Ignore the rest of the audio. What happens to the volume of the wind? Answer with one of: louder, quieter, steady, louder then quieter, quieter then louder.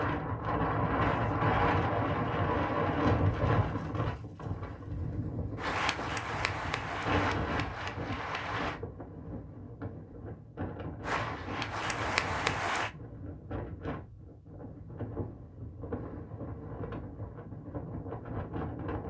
quieter.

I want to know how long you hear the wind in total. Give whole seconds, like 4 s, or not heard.
19 s.